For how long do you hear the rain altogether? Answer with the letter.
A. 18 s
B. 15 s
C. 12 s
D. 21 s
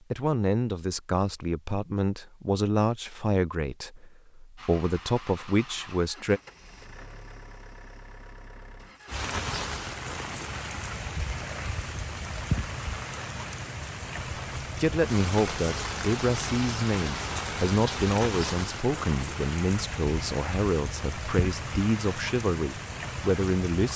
B.